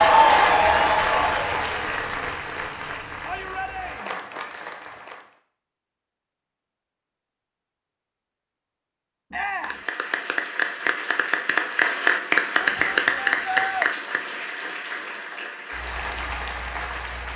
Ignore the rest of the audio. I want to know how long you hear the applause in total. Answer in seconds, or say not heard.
13 s.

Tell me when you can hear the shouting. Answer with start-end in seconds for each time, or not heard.
3.2-4.2, 9.3-9.8, 12.7-13.9.